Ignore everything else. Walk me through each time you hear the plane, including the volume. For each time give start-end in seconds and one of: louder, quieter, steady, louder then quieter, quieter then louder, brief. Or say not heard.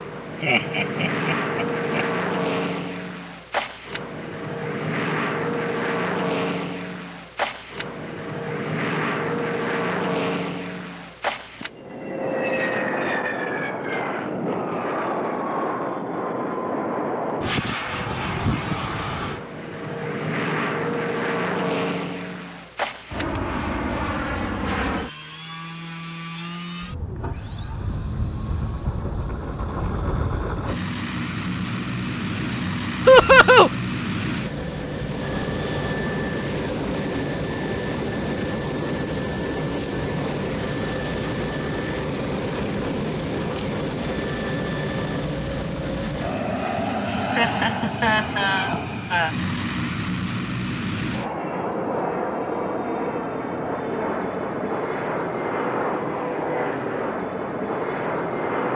0.0-58.7 steady.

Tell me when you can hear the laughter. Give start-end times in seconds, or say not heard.
0.4-2.0, 33.0-33.7, 47.0-49.4.